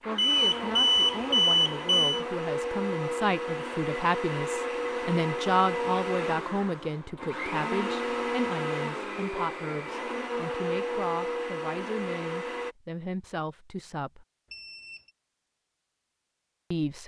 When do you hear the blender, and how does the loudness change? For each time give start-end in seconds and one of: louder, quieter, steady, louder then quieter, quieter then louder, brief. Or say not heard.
0.0-12.8 steady.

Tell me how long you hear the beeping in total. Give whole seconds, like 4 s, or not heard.
3 s.